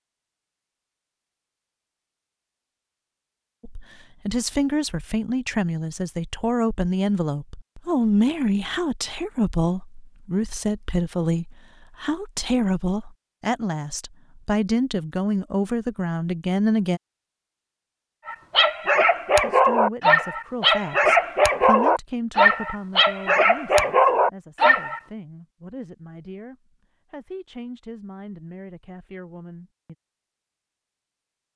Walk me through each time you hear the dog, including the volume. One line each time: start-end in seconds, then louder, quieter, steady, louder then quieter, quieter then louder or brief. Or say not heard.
18.2-25.0 steady.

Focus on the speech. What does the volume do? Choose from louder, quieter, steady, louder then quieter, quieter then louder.
quieter.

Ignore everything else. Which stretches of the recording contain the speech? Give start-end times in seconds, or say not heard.
3.6-17.0, 19.4-29.9.